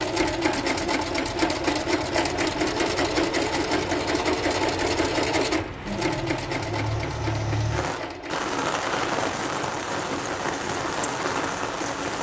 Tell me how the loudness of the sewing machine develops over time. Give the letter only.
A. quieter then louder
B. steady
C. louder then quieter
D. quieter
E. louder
D.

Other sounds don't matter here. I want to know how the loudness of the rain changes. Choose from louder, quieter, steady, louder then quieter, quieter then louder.
louder.